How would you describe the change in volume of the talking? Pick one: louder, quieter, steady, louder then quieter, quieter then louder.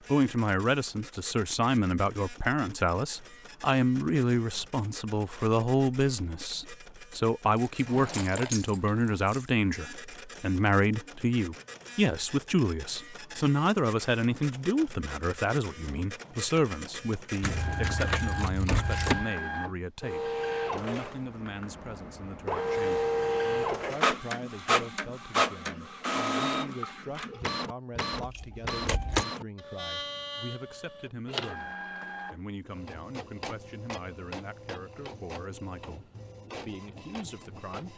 quieter.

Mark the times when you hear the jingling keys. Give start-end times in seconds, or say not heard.
7.5-9.4, 17.4-19.3, 28.1-29.2.